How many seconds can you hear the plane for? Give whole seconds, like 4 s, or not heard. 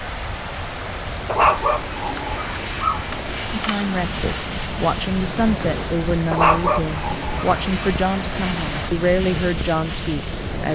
11 s.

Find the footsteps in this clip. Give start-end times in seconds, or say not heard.
not heard.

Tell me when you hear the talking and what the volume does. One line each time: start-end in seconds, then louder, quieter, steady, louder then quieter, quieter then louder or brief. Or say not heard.
3.5-10.7 steady.